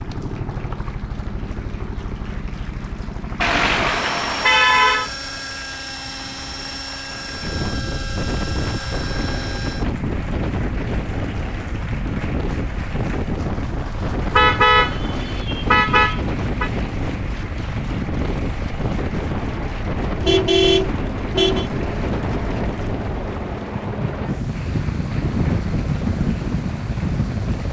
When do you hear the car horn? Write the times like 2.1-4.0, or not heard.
3.4-5.1, 14.3-16.7, 20.2-21.7.